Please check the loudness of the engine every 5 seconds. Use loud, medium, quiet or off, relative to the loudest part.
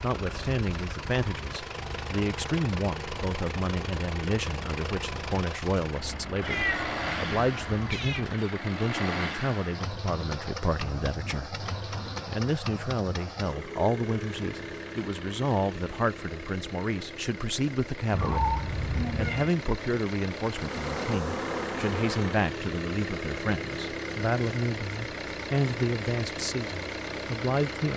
loud, loud, loud, medium, loud, loud.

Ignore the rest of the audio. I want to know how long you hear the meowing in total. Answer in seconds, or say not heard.
4 s.